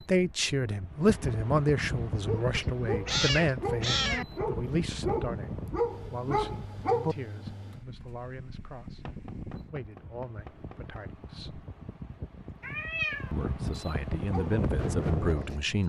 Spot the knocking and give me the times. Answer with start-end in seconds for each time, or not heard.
9.1-11.1.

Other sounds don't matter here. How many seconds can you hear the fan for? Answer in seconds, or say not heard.
16 s.